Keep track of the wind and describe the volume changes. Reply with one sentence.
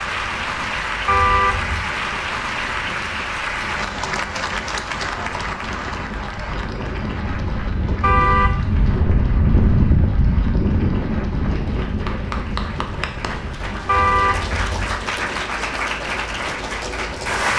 The loudness of the wind goes up, then down.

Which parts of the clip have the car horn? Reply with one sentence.
The car horn can be heard from 1.1 to 1.9 s, from 8.0 to 8.8 s and from 13.8 to 15.1 s.